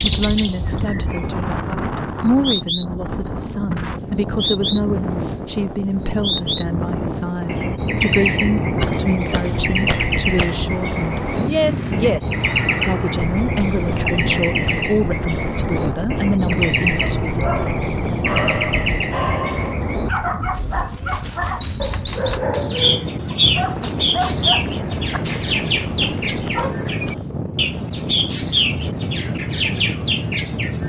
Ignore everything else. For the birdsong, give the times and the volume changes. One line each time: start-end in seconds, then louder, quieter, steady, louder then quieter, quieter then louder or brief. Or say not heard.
0.0-30.8 steady.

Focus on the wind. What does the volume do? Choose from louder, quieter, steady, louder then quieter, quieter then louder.
steady.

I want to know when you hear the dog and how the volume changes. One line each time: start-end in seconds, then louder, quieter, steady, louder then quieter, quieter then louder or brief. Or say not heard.
16.9-26.8 quieter.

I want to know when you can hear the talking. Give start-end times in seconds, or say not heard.
0.0-17.4.